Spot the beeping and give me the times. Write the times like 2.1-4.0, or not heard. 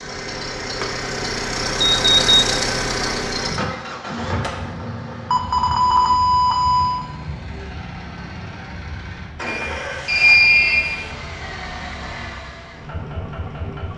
1.8-2.5, 5.3-7.0, 9.4-11.1.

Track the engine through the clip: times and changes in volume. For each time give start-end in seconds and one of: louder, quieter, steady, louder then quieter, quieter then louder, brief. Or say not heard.
0.0-13.9 quieter.